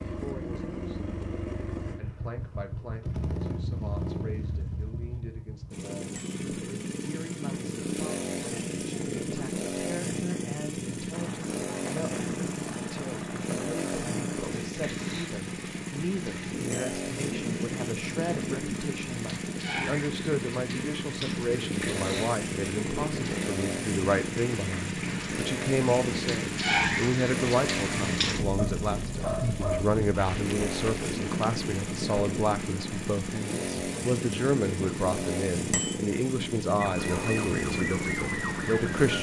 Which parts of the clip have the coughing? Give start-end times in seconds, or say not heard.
not heard.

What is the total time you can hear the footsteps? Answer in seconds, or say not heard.
not heard.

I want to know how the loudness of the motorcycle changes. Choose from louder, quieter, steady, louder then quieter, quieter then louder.
steady.